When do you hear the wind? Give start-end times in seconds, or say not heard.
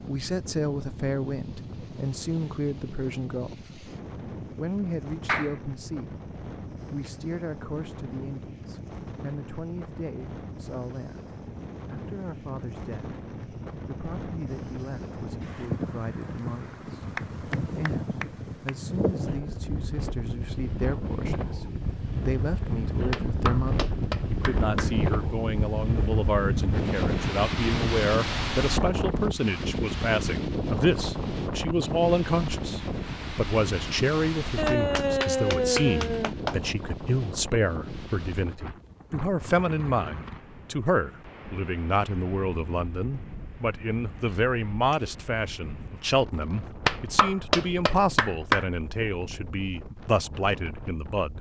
0.0-51.3.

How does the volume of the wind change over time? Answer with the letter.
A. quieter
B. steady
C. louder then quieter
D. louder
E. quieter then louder
C.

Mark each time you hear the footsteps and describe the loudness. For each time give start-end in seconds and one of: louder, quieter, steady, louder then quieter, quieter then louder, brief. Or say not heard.
not heard.